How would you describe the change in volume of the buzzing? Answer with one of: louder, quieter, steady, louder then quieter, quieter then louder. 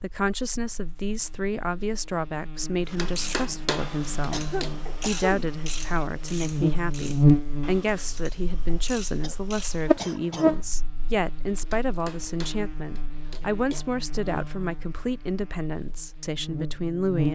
louder then quieter.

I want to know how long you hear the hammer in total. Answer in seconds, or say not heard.
4 s.